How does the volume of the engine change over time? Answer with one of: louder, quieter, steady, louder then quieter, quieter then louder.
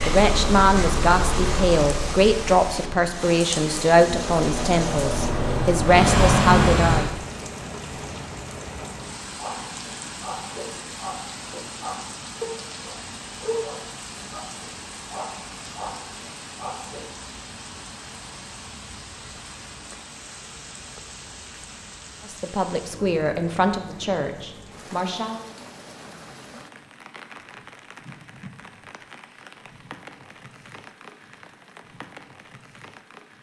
quieter then louder.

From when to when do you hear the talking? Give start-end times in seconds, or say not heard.
0.1-7.0, 22.2-25.4.